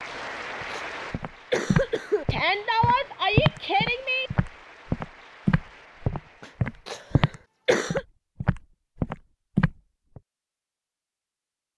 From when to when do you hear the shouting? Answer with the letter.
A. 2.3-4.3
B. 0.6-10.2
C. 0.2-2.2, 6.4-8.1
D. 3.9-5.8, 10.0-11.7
A.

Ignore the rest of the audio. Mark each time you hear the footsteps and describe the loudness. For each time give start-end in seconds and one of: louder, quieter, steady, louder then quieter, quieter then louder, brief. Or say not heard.
0.6-10.2 steady.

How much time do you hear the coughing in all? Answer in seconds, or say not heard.
4 s.